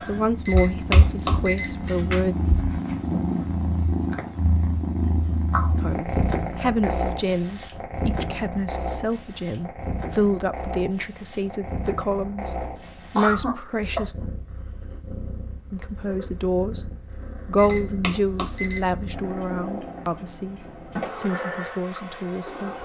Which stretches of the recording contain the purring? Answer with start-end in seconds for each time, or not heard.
0.0-22.8.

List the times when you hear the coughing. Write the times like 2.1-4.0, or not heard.
13.2-14.2.